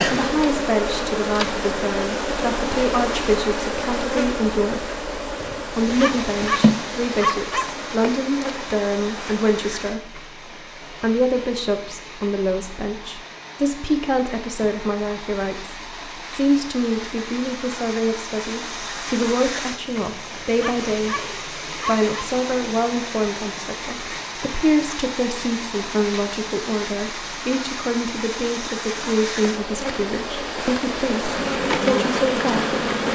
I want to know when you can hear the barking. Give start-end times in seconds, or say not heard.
5.4-7.8, 20.1-22.2.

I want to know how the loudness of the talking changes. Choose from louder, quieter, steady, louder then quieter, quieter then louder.
steady.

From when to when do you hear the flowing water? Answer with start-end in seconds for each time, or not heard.
5.7-33.1.